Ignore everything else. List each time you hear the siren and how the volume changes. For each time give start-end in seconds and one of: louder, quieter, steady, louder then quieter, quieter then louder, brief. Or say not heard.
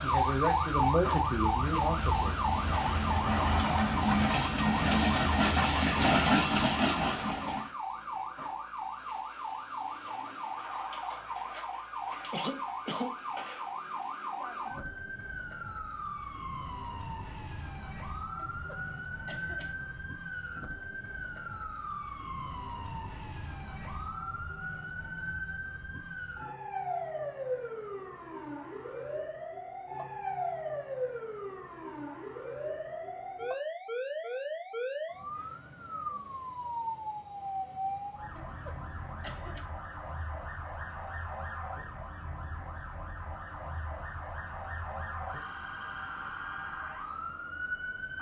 0.0-48.1 quieter.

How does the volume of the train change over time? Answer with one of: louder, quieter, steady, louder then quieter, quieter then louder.
louder.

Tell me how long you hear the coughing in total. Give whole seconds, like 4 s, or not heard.
4 s.